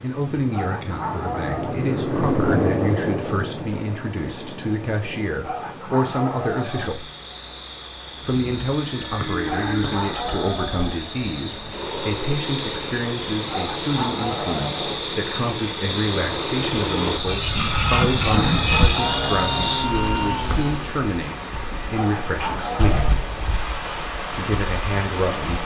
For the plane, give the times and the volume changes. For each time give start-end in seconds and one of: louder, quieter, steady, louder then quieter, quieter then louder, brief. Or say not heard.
0.0-5.8 louder then quieter
8.3-21.1 louder.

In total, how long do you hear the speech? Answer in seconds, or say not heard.
23 s.